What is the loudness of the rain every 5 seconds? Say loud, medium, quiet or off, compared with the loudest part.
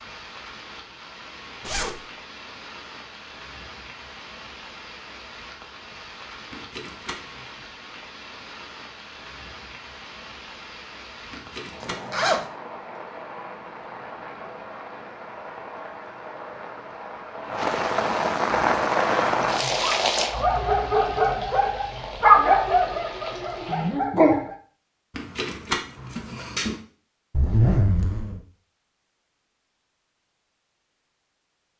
quiet, quiet, quiet, loud, medium, off, off.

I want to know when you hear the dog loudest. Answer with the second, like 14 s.
22 s.